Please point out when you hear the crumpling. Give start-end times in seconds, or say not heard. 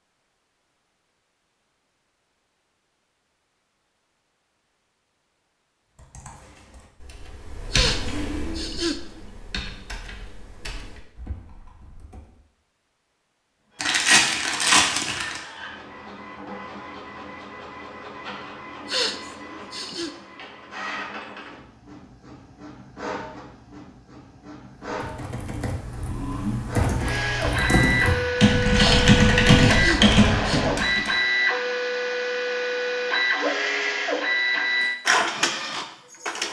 13.8-15.4.